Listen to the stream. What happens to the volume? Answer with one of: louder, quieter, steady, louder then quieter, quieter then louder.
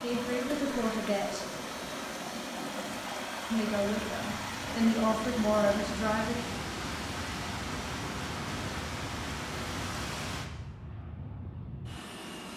steady.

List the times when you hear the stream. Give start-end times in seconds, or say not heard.
0.0-10.5.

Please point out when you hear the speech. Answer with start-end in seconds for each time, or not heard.
0.0-1.5, 3.5-6.5.